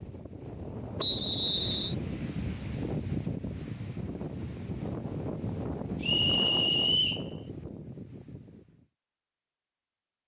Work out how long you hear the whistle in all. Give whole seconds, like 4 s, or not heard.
2 s.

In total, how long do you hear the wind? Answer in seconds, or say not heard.
9 s.